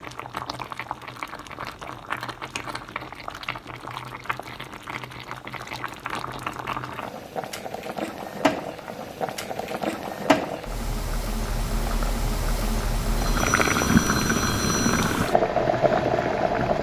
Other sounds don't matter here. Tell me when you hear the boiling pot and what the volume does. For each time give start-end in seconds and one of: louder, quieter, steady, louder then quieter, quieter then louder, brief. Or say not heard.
0.0-16.7 louder.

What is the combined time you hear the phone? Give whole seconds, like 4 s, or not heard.
2 s.